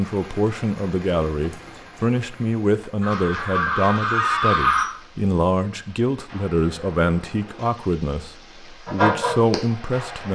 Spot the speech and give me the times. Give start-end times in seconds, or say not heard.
0.0-10.3.